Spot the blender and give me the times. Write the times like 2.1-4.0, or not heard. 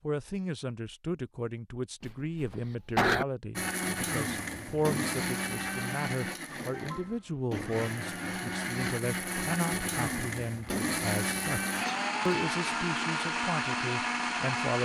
3.5-14.8.